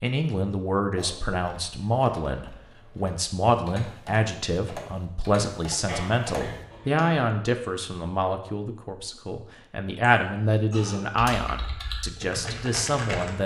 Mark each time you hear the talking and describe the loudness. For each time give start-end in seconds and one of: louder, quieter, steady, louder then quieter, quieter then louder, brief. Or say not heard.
0.0-13.4 steady.